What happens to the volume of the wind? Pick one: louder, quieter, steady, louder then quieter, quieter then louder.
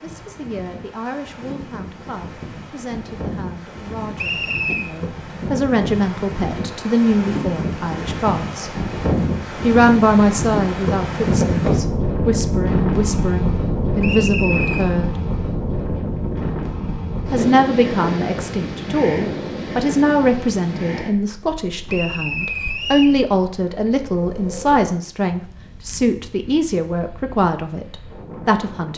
louder then quieter.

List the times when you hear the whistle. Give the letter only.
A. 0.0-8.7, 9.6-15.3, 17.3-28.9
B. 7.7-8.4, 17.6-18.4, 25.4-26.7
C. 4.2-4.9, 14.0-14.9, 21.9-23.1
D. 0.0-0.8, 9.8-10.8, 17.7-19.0
C.